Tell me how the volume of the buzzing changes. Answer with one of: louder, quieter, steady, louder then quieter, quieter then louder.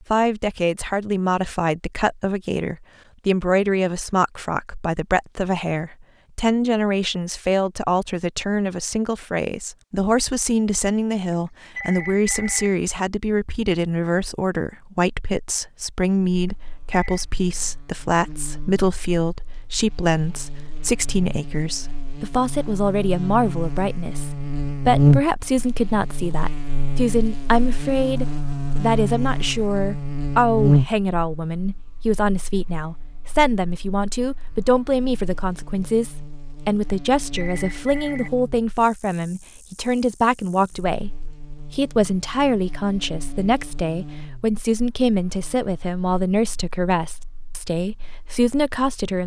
louder then quieter.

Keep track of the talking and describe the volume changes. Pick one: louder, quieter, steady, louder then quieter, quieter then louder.
steady.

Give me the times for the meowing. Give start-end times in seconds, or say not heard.
not heard.